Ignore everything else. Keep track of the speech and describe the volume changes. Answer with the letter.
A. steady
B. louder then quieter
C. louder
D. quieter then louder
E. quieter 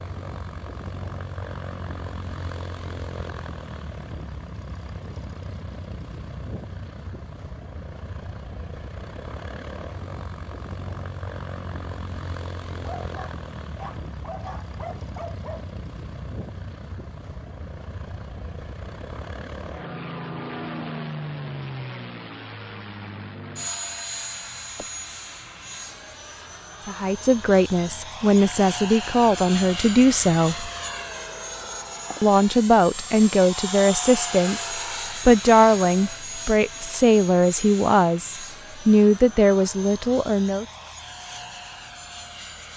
A.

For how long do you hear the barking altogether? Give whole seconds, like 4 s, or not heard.
3 s.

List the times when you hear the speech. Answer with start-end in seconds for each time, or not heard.
26.9-30.7, 32.2-40.6.